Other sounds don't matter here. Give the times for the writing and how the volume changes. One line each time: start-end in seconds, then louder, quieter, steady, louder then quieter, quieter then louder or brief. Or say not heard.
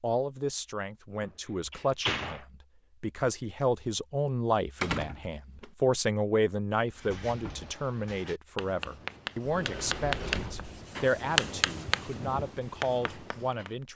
6.9-13.8 louder then quieter.